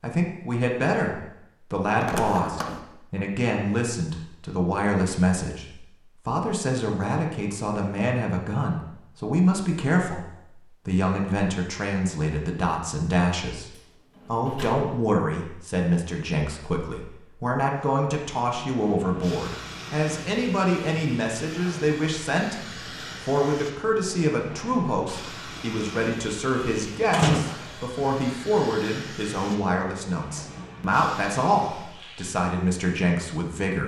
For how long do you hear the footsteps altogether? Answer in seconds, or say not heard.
not heard.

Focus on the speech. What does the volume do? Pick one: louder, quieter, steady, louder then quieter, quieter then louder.
steady.